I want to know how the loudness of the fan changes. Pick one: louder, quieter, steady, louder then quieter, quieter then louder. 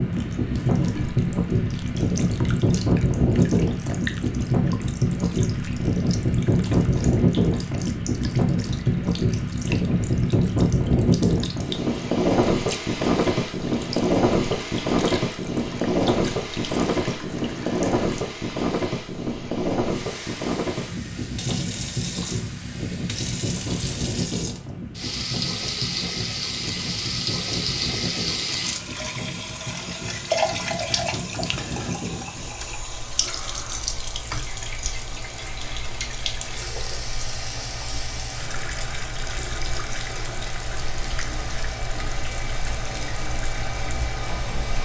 quieter.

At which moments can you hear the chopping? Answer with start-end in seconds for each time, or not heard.
not heard.